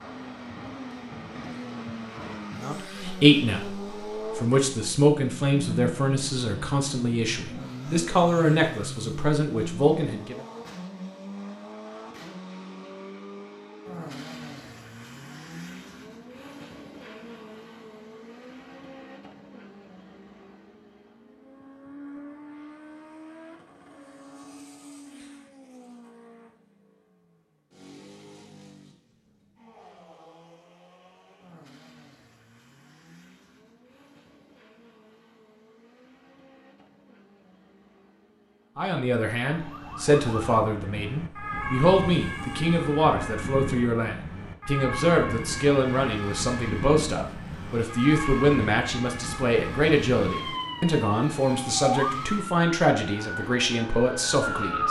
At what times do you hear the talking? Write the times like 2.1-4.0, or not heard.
2.5-10.4, 38.8-54.8.